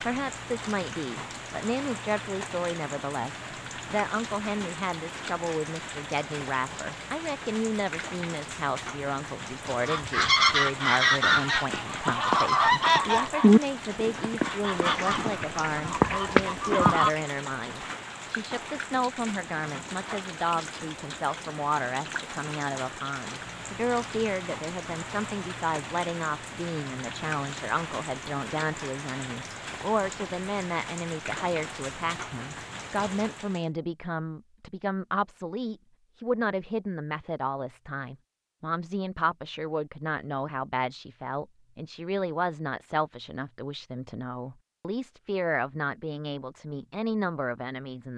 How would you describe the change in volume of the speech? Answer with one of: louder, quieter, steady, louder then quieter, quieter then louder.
steady.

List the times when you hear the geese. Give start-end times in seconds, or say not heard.
9.8-17.1.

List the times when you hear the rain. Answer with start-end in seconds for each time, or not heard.
0.0-33.7.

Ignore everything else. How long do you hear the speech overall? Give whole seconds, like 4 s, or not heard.
48 s.